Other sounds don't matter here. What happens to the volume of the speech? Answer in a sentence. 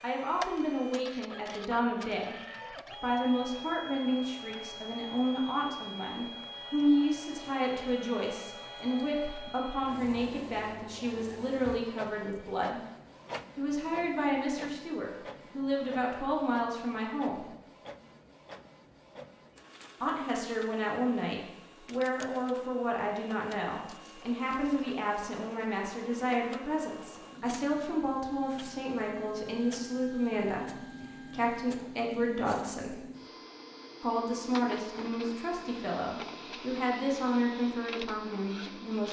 The volume of the speech stays about the same.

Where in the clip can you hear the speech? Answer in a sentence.
You can hear the speech from 0.0 to 12.8 s, from 13.6 to 17.4 s, from 20.0 to 33.0 s and from 34.0 to 39.0 s.